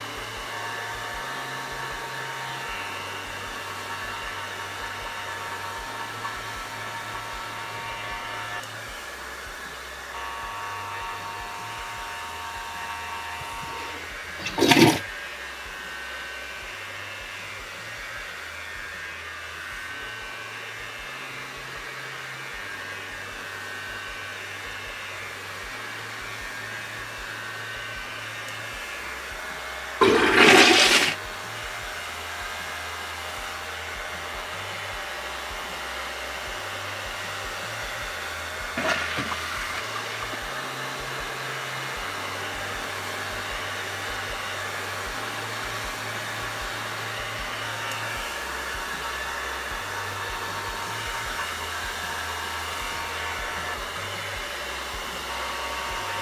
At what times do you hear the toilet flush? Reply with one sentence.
The toilet flush can be heard from 13.8 to 15.0 s, from 30.0 to 31.1 s and from 38.8 to 40.4 s.